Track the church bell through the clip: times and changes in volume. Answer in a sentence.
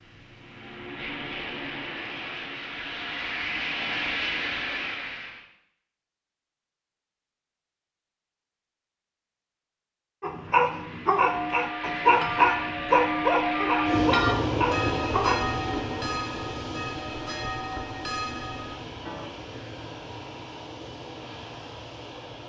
You can hear the church bell from 11.2 to 19.3 s, getting louder then quieter.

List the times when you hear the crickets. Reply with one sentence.
You can't hear the crickets here.